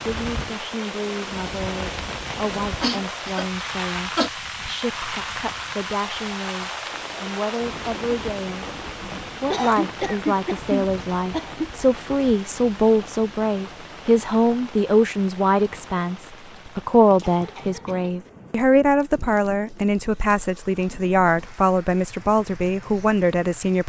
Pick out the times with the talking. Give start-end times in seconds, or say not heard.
0.0-8.7, 9.4-23.8.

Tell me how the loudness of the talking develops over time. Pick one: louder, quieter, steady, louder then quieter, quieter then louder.
louder.